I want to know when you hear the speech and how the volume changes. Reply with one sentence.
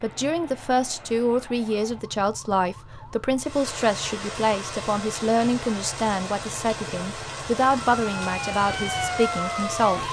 You can hear the speech from 0.0 to 10.0 s, at a steady volume.